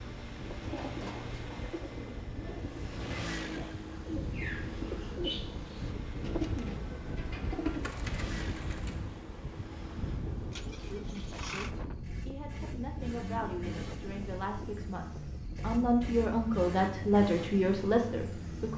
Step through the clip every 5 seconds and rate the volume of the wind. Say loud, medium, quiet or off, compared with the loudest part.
loud, loud, loud, medium.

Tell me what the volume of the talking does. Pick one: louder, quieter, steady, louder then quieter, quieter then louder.
louder.